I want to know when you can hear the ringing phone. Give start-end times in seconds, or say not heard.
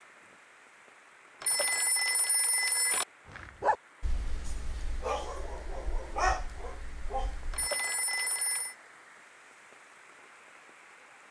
1.4-3.0, 7.5-8.8.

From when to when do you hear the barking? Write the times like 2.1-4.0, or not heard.
3.2-7.7.